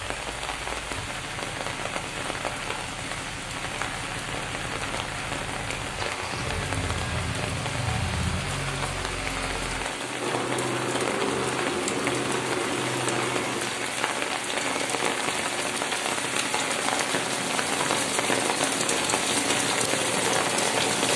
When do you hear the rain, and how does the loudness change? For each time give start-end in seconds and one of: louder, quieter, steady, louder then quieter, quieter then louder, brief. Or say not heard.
0.0-21.1 louder.